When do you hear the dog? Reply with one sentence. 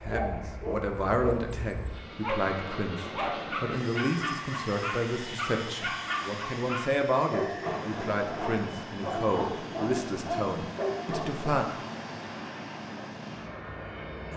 The dog can be heard from 0.1 to 11.4 s.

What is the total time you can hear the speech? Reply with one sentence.
The speech can be heard for 12 seconds in total.